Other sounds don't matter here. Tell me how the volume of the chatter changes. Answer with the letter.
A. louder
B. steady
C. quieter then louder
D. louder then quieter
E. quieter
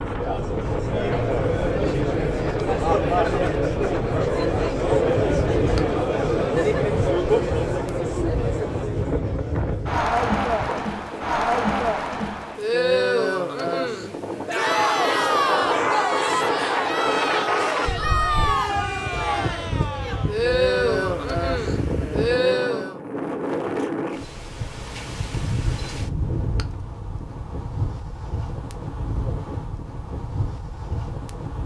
B.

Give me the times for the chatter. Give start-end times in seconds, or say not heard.
0.0-23.0.